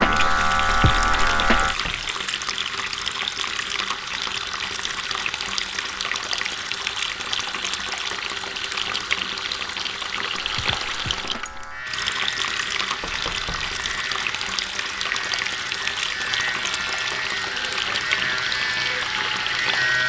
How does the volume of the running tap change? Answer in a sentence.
The loudness of the running tap stays about the same.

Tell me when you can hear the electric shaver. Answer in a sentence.
You can hear the electric shaver from 0.0 to 1.8 s and from 10.3 to 20.0 s.